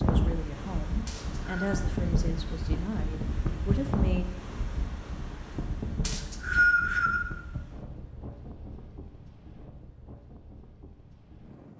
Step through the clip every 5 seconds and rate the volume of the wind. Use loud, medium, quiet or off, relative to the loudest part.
loud, medium, quiet.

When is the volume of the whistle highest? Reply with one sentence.
The loudest moment of the whistle is at 7 seconds.